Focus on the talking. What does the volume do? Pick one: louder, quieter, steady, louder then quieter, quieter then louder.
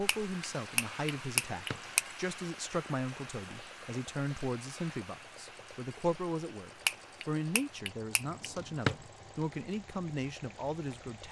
steady.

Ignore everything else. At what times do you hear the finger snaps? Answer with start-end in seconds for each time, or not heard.
0.1-2.0, 6.8-8.2.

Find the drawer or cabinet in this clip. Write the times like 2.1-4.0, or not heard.
1.4-1.8, 8.3-8.9.